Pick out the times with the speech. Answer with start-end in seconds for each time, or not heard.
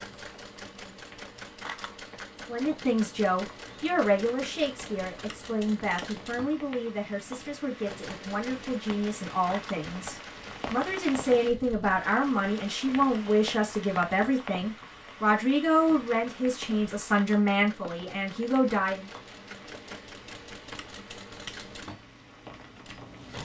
2.5-19.1.